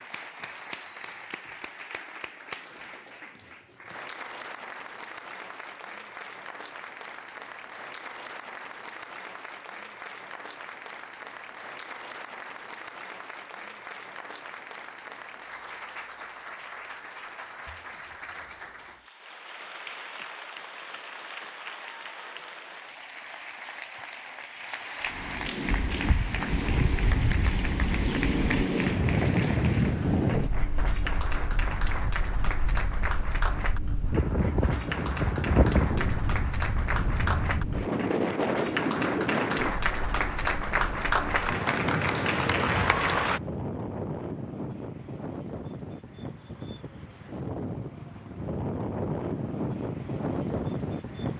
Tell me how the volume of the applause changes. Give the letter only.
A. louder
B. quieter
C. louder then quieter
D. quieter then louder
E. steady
A.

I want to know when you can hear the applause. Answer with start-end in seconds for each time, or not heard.
0.0-43.4.